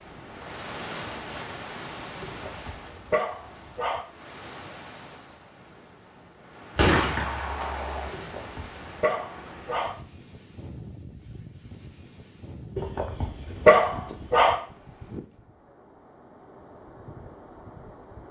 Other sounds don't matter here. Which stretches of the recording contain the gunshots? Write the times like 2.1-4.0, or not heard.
6.8-8.1.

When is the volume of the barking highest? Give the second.
14 s.